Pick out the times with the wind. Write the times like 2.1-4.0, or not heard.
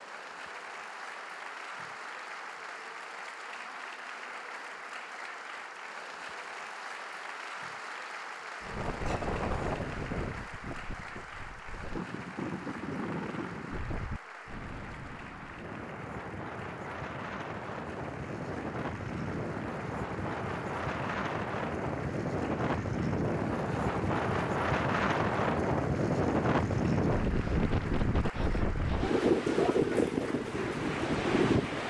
8.6-31.8.